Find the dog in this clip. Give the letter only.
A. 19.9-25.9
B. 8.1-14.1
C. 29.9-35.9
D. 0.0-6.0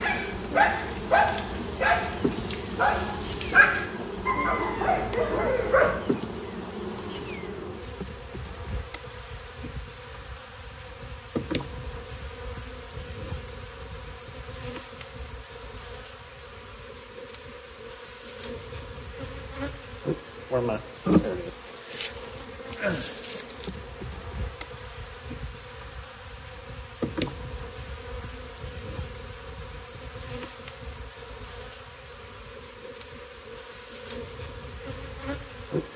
D.